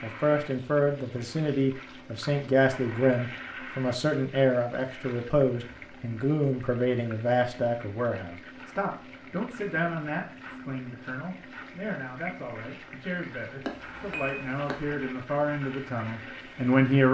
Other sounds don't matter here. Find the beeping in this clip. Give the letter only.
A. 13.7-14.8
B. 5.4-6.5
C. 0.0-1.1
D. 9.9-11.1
A.